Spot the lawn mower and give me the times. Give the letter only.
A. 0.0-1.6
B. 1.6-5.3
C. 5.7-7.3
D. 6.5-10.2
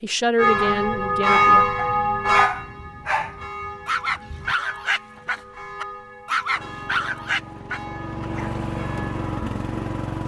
D.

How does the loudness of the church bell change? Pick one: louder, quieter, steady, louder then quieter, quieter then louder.
quieter.